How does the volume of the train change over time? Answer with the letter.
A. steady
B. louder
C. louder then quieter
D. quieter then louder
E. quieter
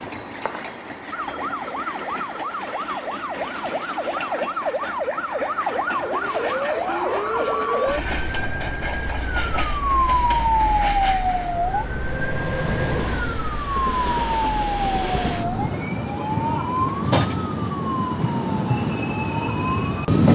B.